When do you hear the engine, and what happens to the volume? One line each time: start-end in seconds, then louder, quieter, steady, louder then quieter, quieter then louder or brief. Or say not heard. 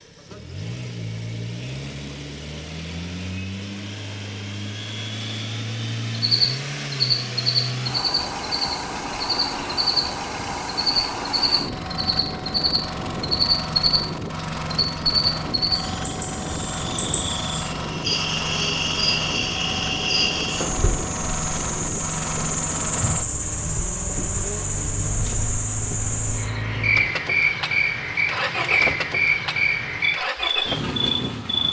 0.0-31.6 steady.